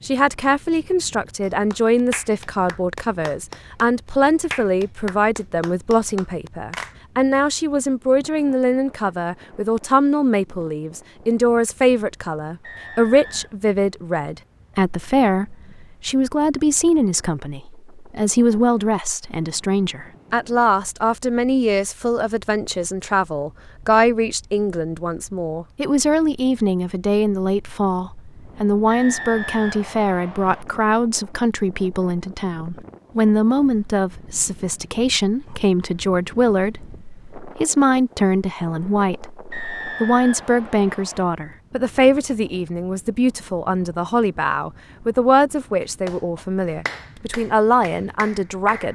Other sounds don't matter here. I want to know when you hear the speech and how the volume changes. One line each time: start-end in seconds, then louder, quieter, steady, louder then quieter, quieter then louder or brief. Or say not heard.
0.0-48.9 steady.